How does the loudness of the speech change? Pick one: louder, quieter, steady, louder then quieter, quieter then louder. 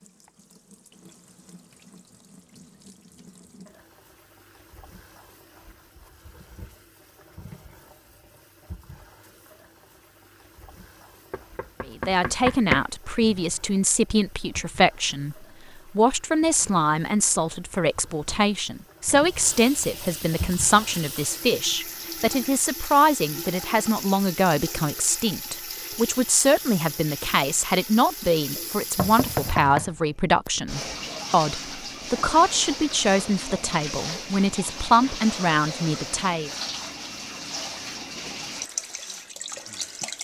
steady.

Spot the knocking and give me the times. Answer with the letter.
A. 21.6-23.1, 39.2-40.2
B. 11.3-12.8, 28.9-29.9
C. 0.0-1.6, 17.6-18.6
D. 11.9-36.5
B.